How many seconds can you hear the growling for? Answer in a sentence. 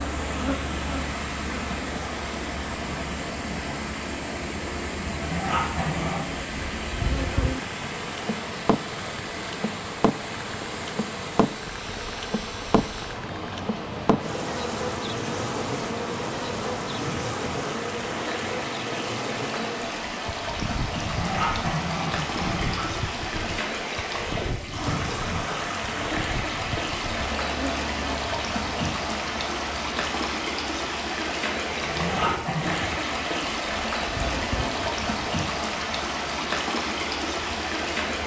You can hear the growling for 4 seconds altogether.